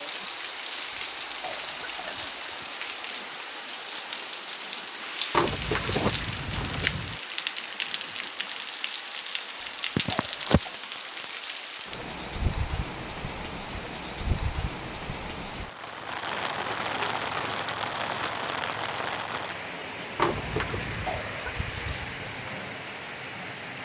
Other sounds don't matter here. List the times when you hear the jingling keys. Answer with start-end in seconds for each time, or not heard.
5.3-7.2, 20.1-21.1.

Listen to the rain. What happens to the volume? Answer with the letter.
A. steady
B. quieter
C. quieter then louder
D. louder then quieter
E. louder
A.